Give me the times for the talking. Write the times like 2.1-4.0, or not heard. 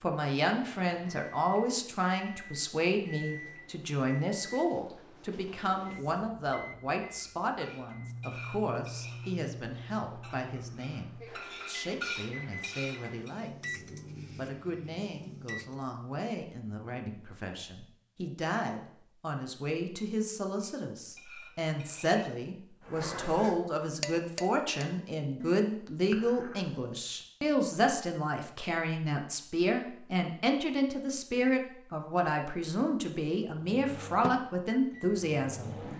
0.0-35.8.